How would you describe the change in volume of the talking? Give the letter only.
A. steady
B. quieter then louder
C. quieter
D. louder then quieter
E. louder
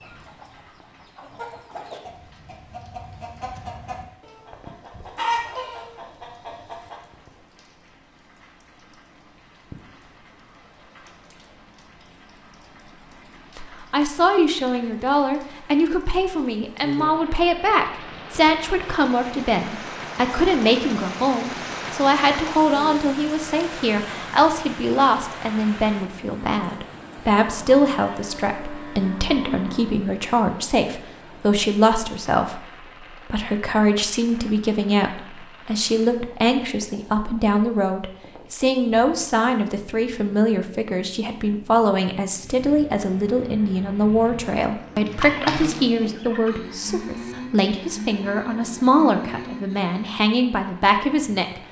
A.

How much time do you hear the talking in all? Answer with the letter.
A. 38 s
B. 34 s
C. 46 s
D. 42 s
A.